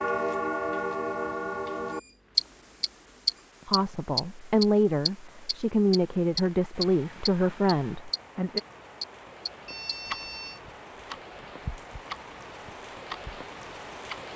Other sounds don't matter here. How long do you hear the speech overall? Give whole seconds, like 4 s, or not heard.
5 s.